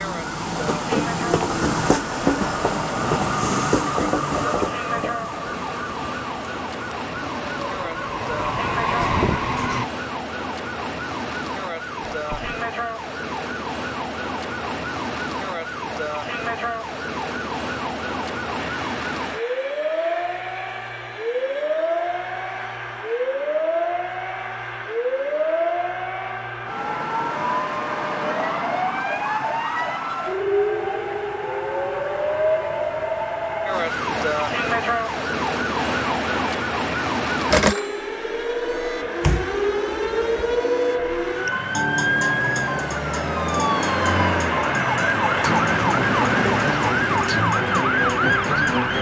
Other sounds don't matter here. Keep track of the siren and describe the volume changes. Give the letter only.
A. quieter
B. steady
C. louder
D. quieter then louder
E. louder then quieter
C.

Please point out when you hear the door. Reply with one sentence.
You can hear the door from 12.1 to 12.6 s and from 39.2 to 40.6 s.